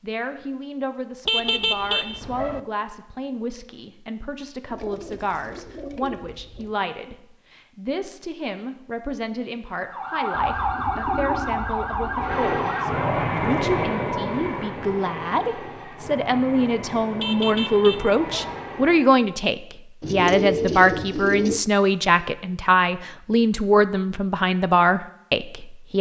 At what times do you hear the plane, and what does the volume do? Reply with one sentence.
The plane can be heard from 12.2 to 19.2 s, getting quieter.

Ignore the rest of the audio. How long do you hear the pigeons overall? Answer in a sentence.
You can hear the pigeons for 6 seconds altogether.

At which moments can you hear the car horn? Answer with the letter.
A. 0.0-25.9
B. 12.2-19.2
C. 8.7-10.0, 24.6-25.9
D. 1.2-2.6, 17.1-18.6
D.